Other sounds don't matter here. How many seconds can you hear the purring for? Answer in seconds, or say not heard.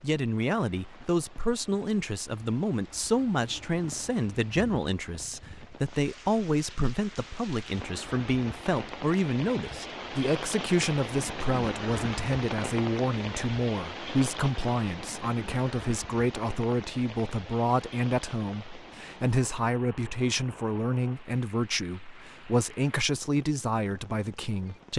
not heard.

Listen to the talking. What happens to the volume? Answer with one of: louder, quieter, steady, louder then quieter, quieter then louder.
steady.